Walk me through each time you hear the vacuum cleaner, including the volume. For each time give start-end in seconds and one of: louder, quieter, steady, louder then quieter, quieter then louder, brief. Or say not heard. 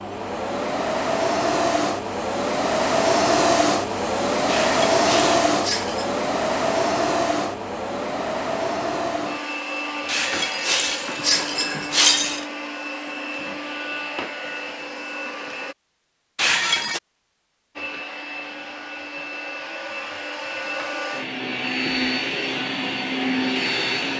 0.0-15.8 quieter
17.8-24.1 louder.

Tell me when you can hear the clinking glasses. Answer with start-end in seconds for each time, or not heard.
4.5-6.1, 10.1-12.4, 16.4-17.0.